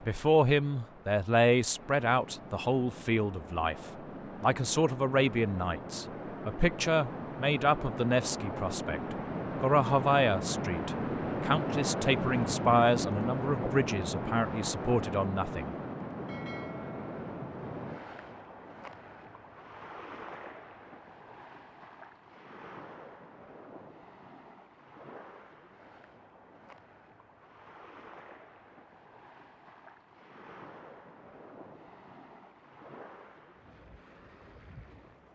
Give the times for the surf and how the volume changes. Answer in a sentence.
The surf can be heard from 0.0 to 35.3 s, getting louder then quieter.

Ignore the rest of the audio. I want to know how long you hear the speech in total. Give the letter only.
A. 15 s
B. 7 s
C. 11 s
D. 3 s
A.